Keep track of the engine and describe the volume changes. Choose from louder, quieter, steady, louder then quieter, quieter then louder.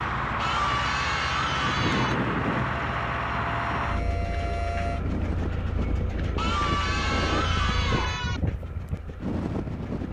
quieter.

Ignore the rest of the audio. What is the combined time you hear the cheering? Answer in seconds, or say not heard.
4 s.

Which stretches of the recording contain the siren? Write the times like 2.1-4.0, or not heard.
2.6-5.0.